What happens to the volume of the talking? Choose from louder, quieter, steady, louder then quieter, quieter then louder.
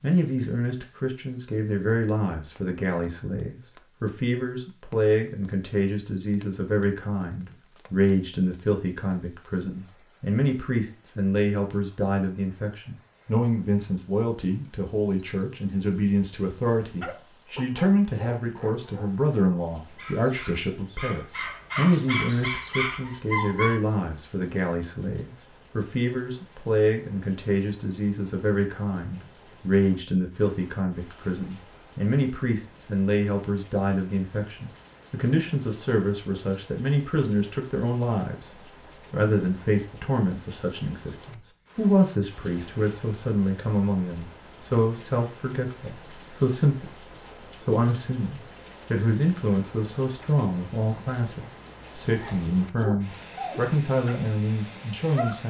steady.